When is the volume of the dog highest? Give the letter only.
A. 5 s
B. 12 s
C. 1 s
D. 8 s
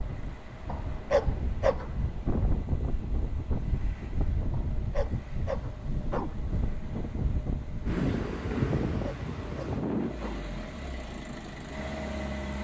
C.